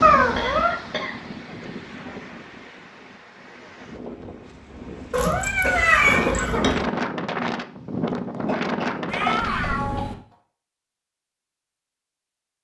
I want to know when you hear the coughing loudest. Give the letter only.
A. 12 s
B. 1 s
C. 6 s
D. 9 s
C.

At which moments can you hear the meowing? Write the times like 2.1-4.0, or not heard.
0.0-0.8, 5.1-6.8, 9.1-10.2.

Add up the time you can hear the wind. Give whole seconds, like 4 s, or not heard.
10 s.